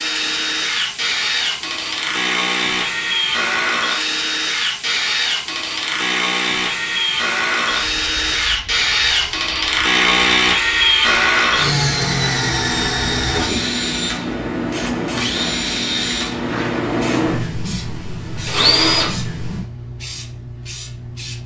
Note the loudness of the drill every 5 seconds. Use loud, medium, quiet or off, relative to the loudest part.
loud, loud, loud, loud, off.